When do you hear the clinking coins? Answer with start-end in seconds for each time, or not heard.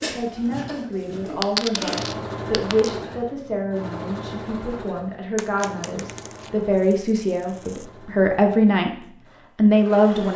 1.4-2.9, 5.3-7.8.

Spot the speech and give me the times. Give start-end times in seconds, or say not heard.
0.1-8.9, 9.6-10.3.